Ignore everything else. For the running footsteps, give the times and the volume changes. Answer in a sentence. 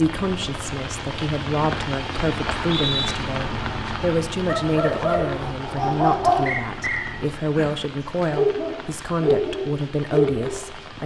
You can't hear the running footsteps here.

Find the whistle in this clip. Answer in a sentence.
You can hear the whistle from 2.6 to 3.1 s and from 6.5 to 7.2 s.